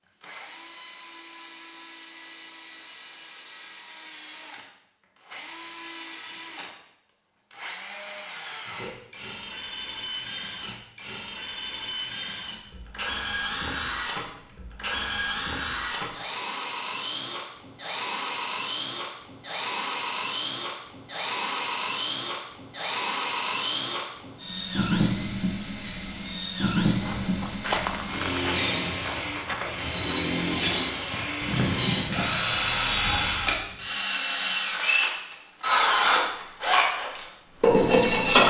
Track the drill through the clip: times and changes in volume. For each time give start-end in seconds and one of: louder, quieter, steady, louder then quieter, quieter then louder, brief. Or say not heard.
0.2-38.4 louder.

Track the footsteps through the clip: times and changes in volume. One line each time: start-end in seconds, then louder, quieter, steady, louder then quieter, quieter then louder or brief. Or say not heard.
27.0-32.6 quieter then louder.